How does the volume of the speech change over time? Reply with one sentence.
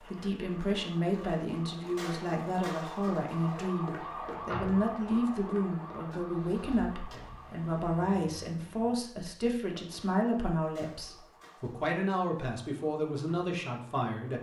The volume of the speech stays about the same.